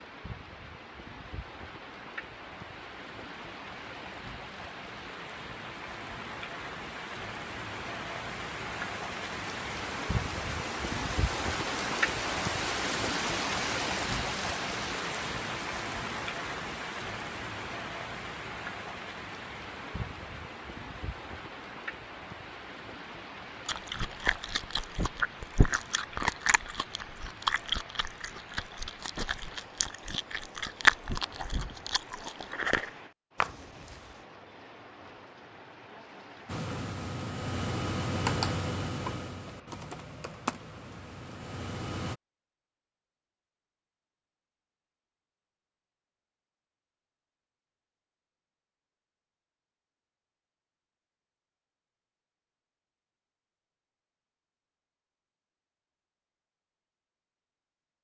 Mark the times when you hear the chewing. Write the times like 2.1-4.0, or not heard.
23.6-34.0.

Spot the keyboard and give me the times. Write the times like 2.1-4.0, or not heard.
36.5-42.1.